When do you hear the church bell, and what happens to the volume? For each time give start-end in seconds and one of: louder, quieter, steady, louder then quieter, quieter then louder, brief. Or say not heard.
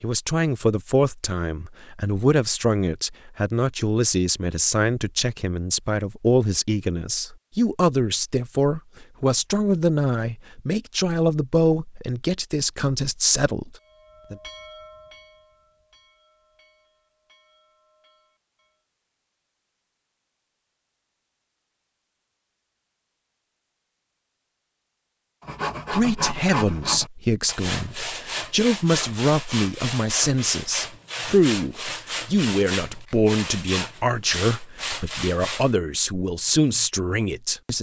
13.8-18.9 quieter.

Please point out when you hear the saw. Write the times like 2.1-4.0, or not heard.
25.4-35.7.